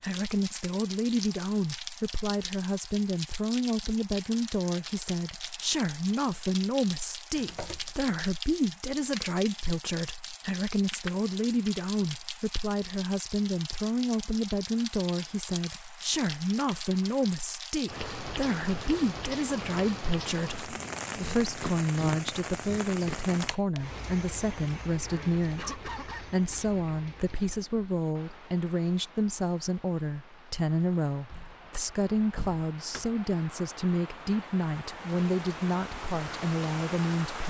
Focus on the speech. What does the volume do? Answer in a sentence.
The loudness of the speech stays about the same.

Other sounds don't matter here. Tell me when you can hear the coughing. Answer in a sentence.
The coughing can be heard from 7.3 to 8.0 s, from 21.1 to 23.1 s and from 25.1 to 26.6 s.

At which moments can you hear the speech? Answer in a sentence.
You can hear the speech from 0.0 to 37.4 s.